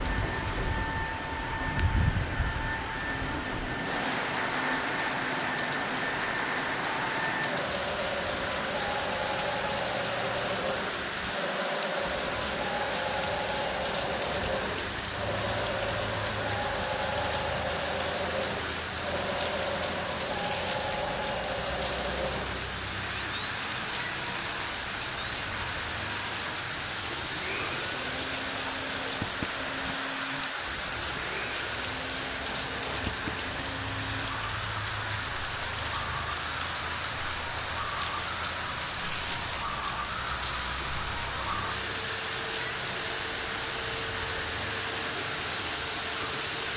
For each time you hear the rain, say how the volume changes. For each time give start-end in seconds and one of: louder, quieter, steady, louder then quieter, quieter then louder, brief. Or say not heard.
0.0-46.7 steady.